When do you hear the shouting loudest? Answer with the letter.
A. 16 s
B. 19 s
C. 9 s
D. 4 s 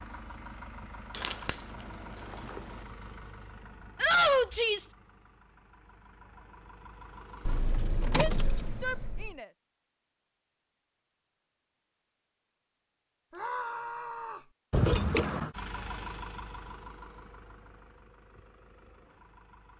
D.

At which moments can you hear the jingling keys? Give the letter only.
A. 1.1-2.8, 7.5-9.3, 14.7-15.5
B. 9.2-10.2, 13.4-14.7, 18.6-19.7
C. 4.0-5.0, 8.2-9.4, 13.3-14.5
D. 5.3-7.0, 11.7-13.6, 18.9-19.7
A.